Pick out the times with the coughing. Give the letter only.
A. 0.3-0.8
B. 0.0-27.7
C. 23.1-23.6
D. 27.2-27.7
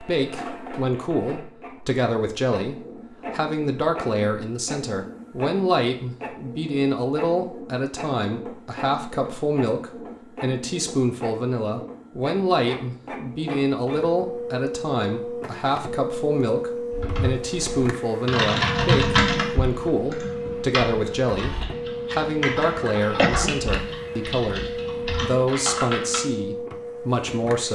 C.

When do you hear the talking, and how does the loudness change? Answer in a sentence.
The talking can be heard from 0.0 to 27.7 s, at a steady volume.